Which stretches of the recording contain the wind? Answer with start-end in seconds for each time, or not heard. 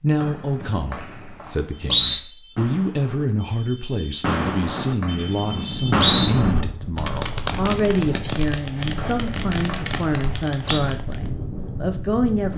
5.0-12.5.